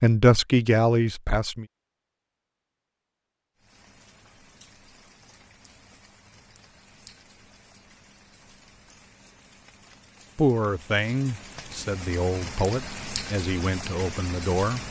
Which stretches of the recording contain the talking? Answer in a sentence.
You can hear the talking from 0.0 to 1.6 s and from 10.3 to 14.8 s.